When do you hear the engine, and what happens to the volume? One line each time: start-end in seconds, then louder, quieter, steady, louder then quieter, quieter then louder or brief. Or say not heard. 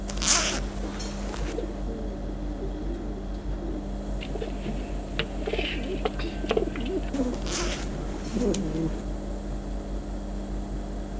0.0-11.1 steady.